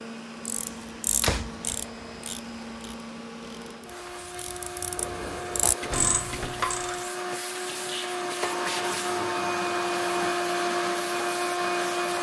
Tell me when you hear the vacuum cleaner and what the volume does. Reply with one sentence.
You can hear the vacuum cleaner from 0.0 to 12.1 s, getting louder.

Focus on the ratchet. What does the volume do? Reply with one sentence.
The loudness of the ratchet goes down, then up.